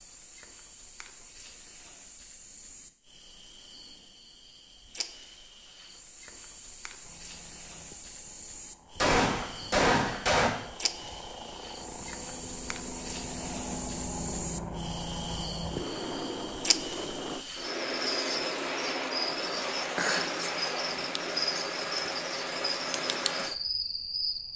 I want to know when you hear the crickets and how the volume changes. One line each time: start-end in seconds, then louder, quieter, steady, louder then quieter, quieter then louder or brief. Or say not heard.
0.0-24.5 louder.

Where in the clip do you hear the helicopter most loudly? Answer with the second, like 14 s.
16 s.